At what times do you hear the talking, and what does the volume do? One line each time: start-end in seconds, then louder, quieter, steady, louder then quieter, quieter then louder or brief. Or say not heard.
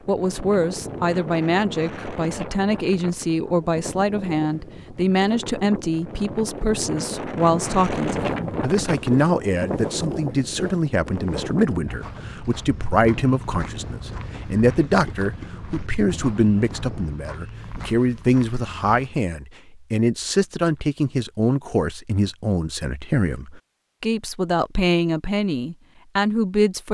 0.1-26.8 steady.